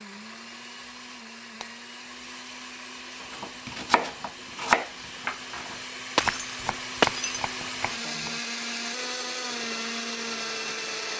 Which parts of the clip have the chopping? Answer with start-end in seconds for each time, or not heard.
3.2-8.3.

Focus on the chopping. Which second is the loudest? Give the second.
5 s.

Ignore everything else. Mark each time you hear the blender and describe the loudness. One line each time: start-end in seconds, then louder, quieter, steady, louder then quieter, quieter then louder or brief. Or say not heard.
0.0-11.1 louder.